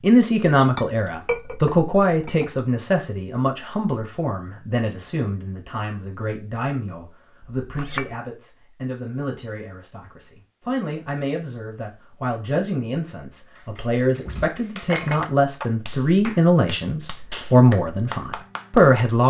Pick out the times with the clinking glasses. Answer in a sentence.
You can hear the clinking glasses from 0.7 to 2.5 s, from 7.5 to 8.2 s and from 14.2 to 15.3 s.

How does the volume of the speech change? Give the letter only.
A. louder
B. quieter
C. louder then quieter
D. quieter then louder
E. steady
D.